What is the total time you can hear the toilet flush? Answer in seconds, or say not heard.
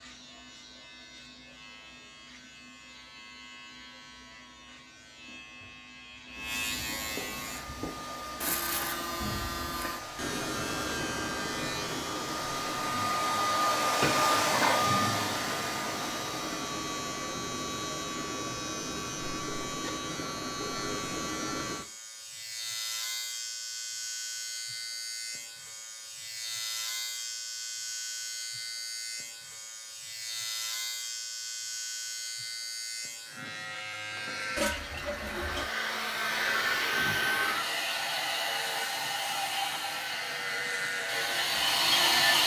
2 s.